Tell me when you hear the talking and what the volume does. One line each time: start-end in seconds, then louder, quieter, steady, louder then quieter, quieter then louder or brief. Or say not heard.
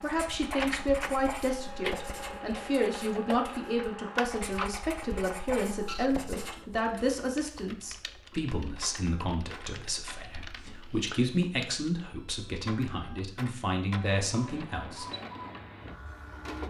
0.0-15.1 steady.